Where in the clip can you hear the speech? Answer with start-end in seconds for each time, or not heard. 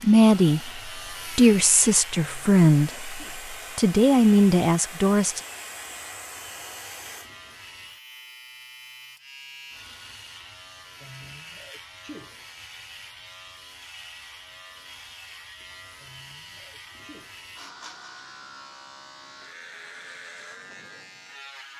0.0-5.4.